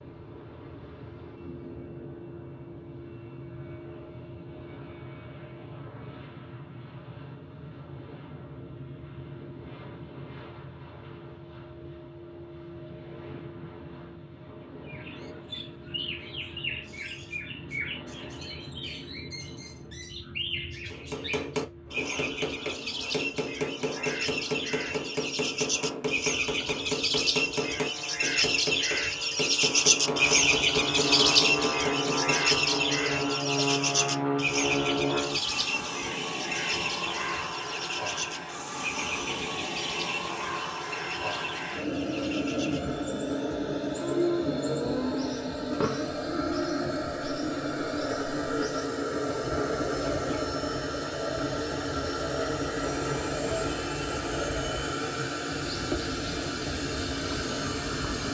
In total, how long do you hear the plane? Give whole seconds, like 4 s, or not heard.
58 s.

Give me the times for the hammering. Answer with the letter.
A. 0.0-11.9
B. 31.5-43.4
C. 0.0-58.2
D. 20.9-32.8
D.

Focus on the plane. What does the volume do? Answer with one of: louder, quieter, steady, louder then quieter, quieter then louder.
louder.